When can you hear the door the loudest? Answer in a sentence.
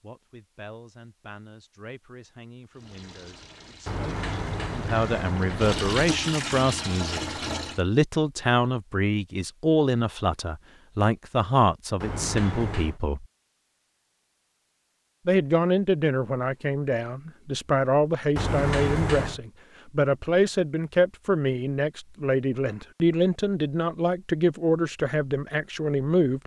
The volume of the door peaks at 19 seconds.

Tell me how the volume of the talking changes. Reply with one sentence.
The volume of the talking goes up.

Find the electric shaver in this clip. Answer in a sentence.
You can't hear the electric shaver here.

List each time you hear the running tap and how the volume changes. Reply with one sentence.
The running tap can be heard from 2.7 to 7.8 s, getting louder.